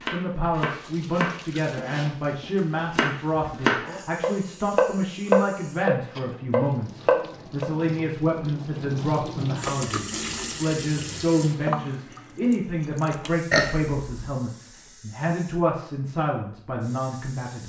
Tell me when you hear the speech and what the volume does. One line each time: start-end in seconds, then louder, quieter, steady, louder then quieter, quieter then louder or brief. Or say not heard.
0.1-17.6 steady.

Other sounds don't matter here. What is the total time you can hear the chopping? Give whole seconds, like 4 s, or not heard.
8 s.